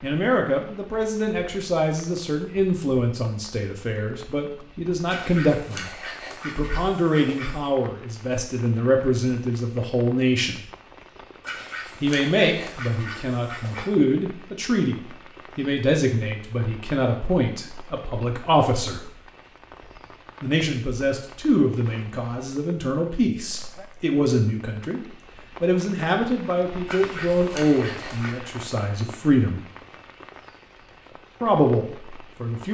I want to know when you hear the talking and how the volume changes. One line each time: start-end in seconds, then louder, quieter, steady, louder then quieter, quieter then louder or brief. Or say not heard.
0.0-10.6 steady
12.0-19.1 steady
20.4-29.6 steady
31.4-32.6 brief.